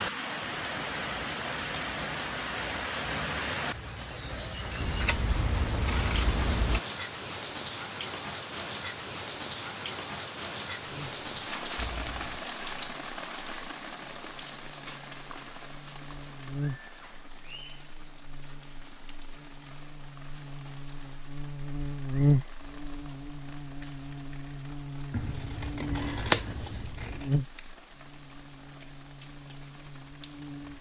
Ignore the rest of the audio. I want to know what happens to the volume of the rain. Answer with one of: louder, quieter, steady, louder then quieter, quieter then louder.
quieter.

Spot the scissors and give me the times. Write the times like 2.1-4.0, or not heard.
4.8-6.8, 11.8-12.4, 25.1-27.4.